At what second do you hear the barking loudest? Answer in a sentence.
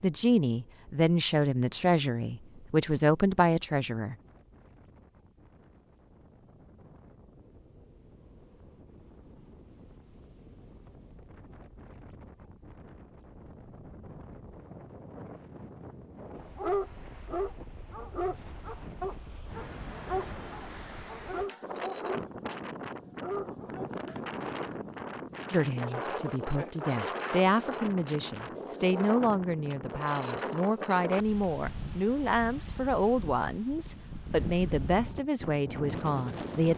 The volume of the barking peaks at 17 seconds.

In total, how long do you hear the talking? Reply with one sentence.
The talking can be heard for 15 seconds in total.